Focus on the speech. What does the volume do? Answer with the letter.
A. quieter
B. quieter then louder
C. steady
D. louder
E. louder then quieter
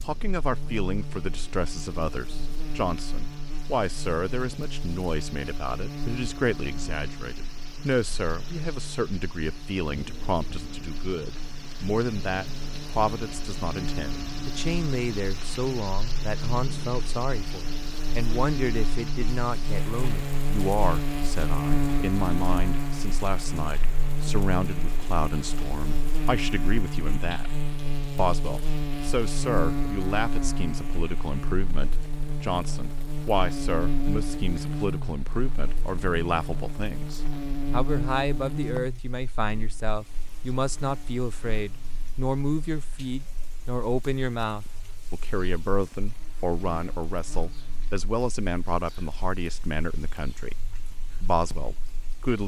C.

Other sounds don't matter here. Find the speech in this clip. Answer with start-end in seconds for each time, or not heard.
0.0-52.4.